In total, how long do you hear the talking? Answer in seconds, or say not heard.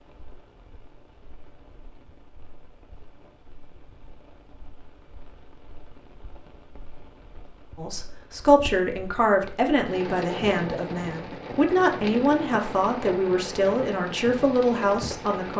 8 s.